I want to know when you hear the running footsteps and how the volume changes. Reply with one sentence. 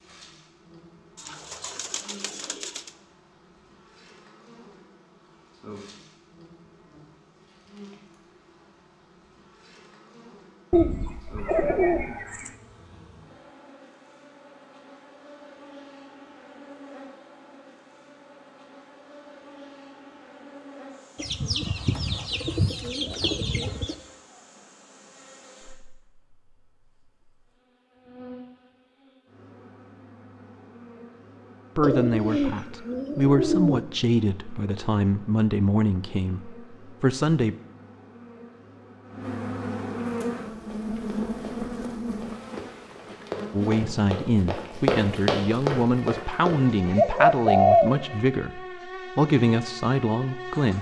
The running footsteps can be heard from 40.0 to 47.0 s, getting louder.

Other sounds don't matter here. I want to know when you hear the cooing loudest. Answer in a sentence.
The volume of the cooing peaks at 48 seconds.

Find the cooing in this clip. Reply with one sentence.
The cooing can be heard from 1.2 to 2.9 s, from 10.7 to 12.5 s, from 21.1 to 23.9 s, from 31.8 to 33.8 s and from 47.0 to 48.0 s.